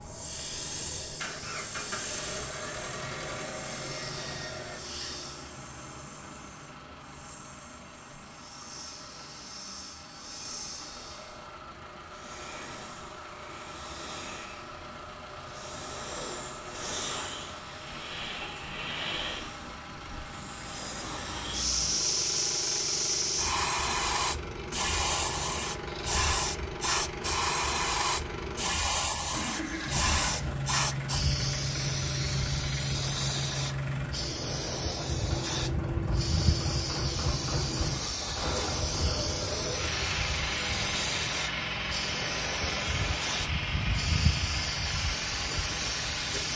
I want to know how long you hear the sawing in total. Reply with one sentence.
You can't hear the sawing here.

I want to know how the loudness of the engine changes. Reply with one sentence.
The loudness of the engine goes up.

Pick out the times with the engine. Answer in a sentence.
The engine can be heard from 0.0 to 46.5 s.